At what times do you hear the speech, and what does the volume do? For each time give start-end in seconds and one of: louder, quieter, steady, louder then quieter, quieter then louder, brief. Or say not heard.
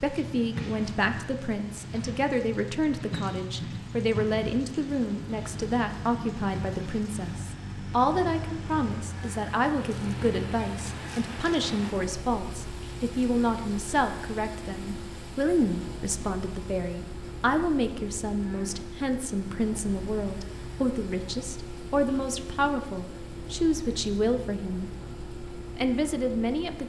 0.0-24.9 steady
25.8-26.8 brief.